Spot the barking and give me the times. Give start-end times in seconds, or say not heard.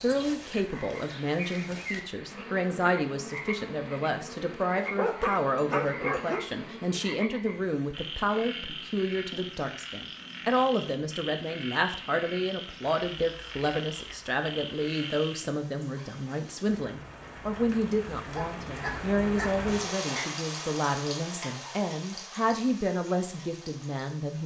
4.8-6.5, 18.2-19.6.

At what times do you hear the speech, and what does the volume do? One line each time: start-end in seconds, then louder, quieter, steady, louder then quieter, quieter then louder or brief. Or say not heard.
0.0-24.4 steady.